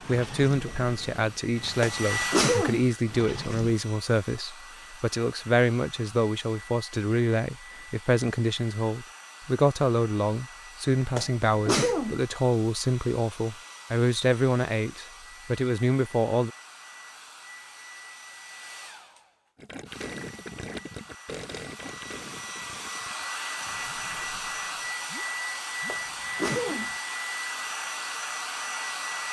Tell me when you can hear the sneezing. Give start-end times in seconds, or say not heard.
1.8-2.9, 11.2-12.2, 25.9-26.9.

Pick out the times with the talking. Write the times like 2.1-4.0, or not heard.
0.1-16.5.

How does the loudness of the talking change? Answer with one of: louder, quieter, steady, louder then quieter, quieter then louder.
steady.